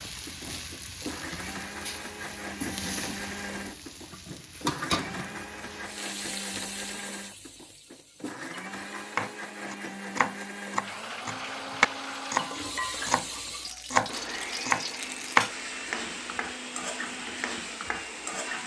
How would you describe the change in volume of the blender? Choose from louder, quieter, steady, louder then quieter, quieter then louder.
steady.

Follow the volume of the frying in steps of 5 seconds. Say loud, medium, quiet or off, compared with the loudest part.
loud, medium, loud, loud.